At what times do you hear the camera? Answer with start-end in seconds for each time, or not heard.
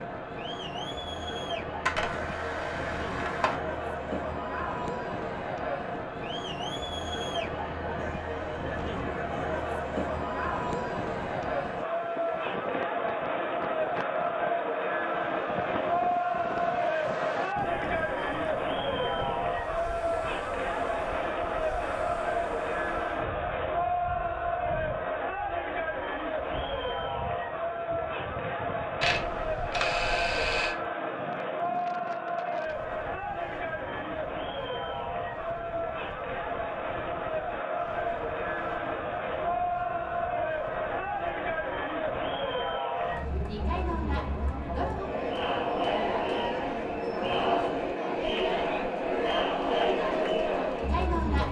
1.9-3.5, 29.0-30.8.